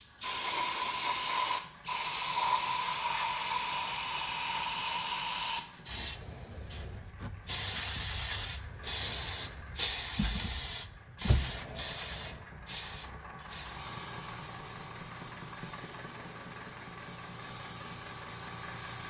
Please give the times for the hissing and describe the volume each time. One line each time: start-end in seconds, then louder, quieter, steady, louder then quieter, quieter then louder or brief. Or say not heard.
0.0-19.0 quieter.